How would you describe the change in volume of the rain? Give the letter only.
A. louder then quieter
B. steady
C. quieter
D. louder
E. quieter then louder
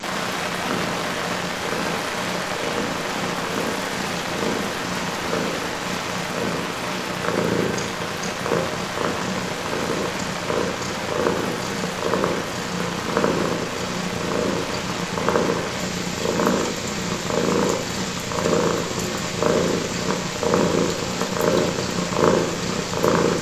C.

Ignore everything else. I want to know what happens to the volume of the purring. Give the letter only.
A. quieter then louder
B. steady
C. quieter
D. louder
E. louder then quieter
D.